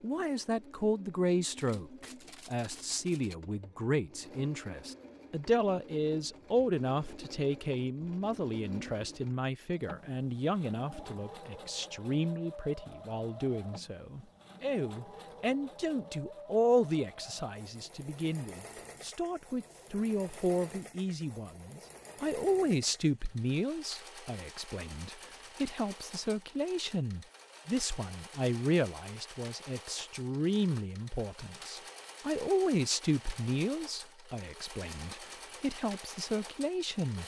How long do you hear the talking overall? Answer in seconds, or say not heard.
37 s.